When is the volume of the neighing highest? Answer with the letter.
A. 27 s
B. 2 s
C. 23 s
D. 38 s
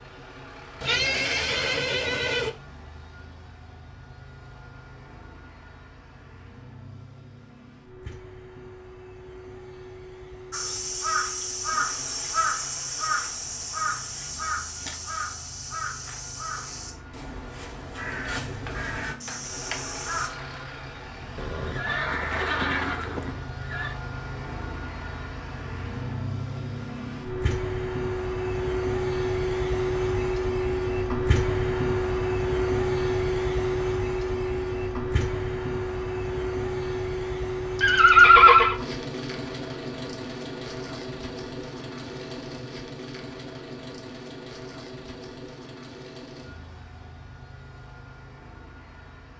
D.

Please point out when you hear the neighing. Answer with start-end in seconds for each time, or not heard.
0.8-2.5, 21.4-23.9, 37.8-38.8.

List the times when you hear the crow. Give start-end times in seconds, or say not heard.
10.5-20.3.